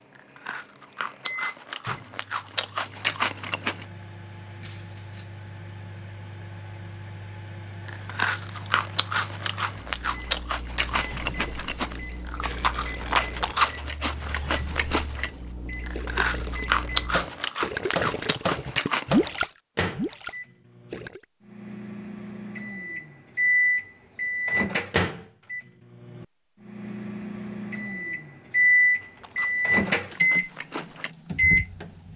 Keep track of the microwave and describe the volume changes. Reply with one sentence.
The loudness of the microwave goes up.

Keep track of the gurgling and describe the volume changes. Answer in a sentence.
The volume of the gurgling goes up.